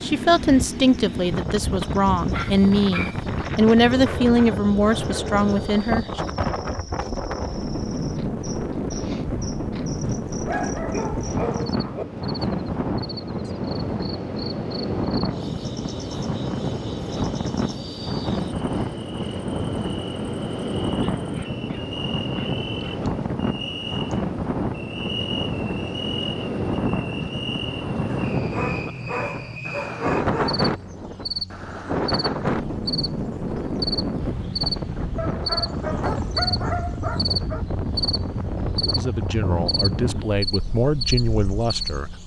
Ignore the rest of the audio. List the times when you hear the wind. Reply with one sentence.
The wind can be heard from 0.0 to 42.2 s.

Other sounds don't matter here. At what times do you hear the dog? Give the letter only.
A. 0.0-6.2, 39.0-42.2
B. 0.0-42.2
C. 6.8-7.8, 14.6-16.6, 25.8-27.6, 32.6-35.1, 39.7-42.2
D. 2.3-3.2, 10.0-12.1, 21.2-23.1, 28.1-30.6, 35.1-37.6
D.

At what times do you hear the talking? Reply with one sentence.
The talking can be heard from 0.0 to 6.2 s and from 39.0 to 42.2 s.